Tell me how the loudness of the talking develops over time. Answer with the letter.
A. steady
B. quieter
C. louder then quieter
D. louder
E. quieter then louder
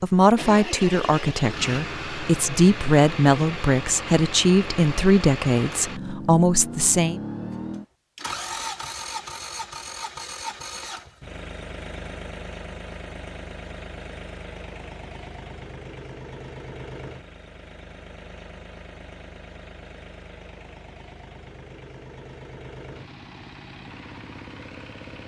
A.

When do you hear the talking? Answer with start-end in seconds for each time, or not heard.
0.0-7.2.